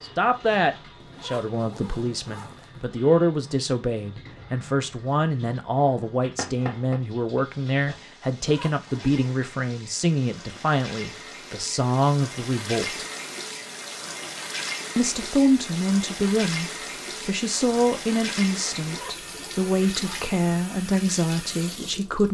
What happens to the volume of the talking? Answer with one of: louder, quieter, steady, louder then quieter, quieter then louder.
steady.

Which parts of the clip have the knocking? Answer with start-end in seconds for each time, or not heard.
6.3-7.0.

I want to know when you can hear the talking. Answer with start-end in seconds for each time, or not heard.
0.0-13.1, 14.9-22.2.